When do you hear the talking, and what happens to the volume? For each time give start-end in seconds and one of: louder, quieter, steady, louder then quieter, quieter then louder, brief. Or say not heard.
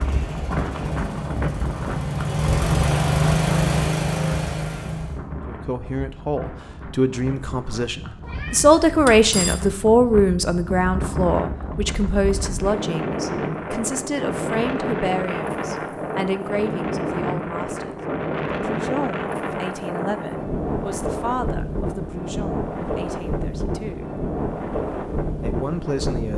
5.5-24.1 quieter
25.4-26.3 brief.